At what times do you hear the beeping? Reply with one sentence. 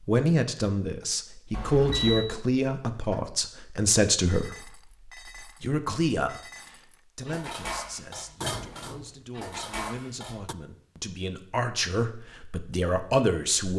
The beeping can be heard from 1.5 to 2.3 s.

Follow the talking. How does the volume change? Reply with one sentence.
The loudness of the talking goes down, then up.